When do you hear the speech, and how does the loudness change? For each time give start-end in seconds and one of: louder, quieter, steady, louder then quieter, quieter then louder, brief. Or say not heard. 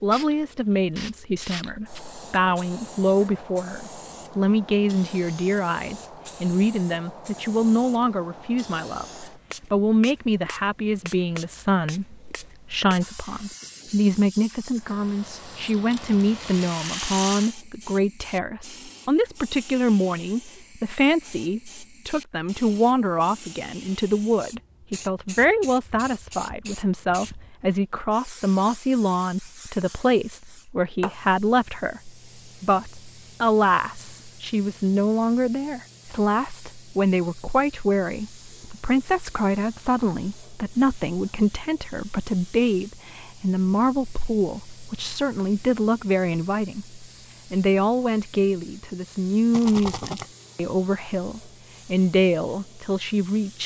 0.0-53.6 steady.